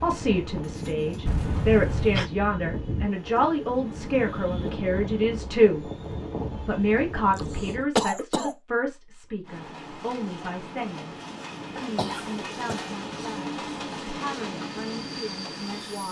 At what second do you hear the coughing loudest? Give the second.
8 s.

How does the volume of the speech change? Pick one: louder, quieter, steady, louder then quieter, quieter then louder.
quieter.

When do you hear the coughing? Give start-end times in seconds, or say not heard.
1.2-2.3, 7.3-8.6, 11.9-12.9.